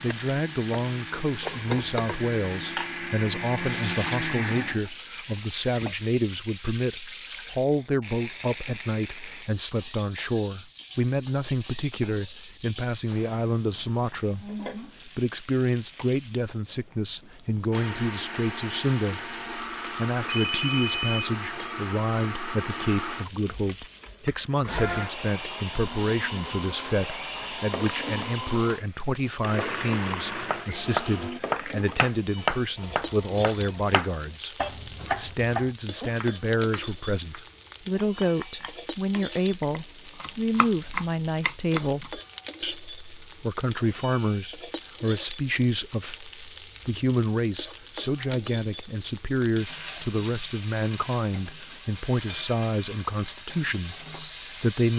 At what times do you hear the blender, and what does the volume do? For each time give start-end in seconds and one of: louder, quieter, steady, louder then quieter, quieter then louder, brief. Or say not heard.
0.0-6.0 louder then quieter
17.7-31.4 steady.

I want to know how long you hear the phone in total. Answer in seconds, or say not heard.
2 s.